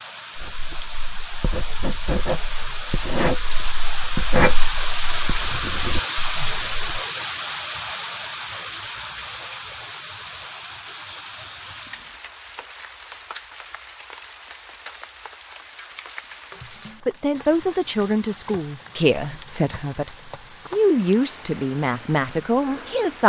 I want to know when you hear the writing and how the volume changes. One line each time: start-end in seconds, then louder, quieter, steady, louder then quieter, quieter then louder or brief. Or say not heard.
0.3-6.9 louder then quieter.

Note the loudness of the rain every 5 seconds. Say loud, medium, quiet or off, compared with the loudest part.
loud, loud, medium, quiet, quiet.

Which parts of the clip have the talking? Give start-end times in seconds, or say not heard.
17.1-23.2.